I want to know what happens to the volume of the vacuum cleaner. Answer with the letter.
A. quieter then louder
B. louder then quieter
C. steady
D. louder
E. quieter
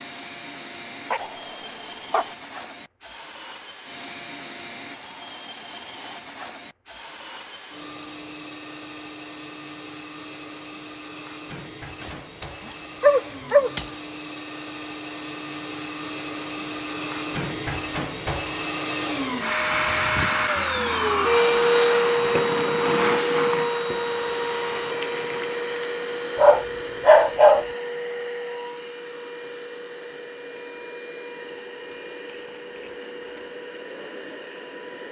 B.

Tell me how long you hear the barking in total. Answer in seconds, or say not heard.
4 s.